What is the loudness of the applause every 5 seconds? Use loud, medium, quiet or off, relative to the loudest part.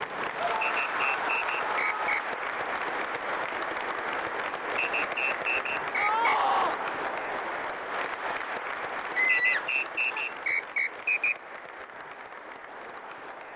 loud, loud, medium.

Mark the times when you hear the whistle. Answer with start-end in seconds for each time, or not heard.
0.6-2.2, 4.8-6.4, 9.2-11.3.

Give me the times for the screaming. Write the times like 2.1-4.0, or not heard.
0.3-2.2, 6.0-6.8, 9.2-10.2.